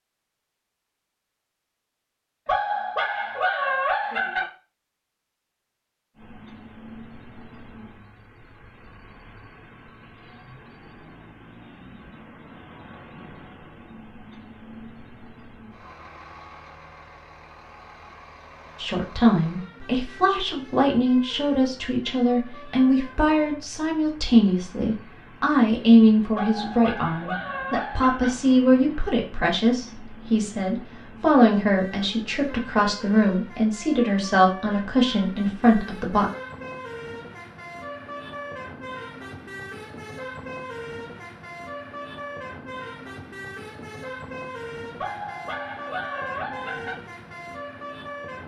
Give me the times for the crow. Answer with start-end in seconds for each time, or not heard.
not heard.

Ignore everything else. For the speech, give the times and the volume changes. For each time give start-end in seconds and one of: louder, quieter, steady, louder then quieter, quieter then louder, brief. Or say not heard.
18.8-36.2 steady.